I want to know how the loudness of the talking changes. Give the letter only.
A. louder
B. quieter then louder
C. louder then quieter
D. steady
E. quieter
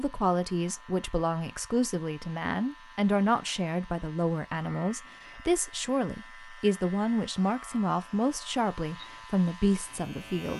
D.